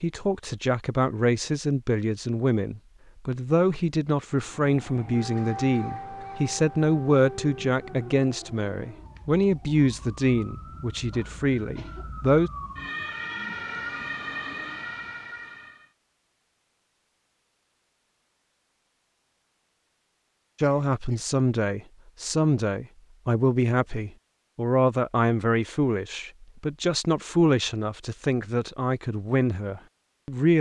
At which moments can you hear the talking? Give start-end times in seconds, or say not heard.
0.0-12.5, 20.6-30.5.